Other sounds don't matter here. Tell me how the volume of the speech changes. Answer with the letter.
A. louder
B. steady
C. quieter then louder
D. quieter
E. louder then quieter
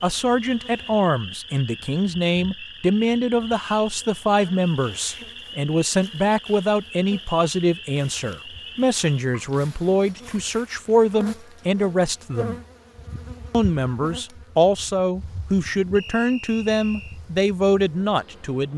B.